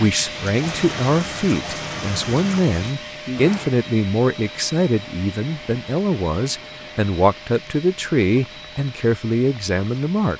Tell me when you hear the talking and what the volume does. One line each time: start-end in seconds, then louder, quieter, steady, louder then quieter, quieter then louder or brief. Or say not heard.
0.0-10.3 steady.